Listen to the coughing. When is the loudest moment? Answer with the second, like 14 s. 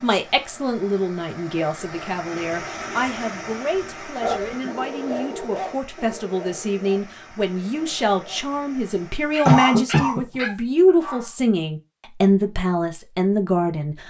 10 s.